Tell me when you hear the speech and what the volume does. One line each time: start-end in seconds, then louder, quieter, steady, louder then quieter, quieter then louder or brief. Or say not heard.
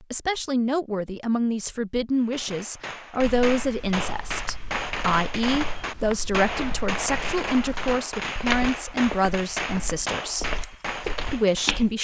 0.1-10.5 steady
11.3-11.9 brief.